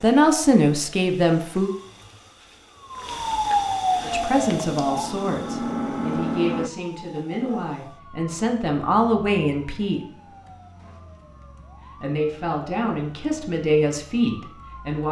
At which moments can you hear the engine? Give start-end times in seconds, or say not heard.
4.0-6.7.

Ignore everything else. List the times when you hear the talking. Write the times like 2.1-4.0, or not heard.
0.0-1.7, 4.0-10.0, 12.0-15.0.